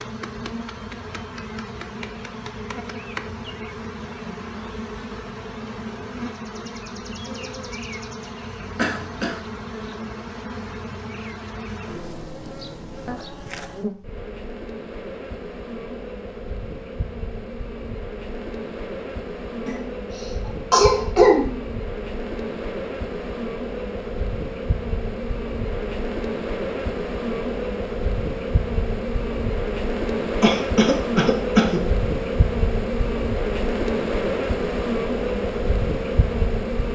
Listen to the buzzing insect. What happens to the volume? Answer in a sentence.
The loudness of the buzzing insect goes up.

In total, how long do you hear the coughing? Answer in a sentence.
You can hear the coughing for 4 seconds altogether.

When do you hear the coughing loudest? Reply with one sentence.
The volume of the coughing peaks at 21 seconds.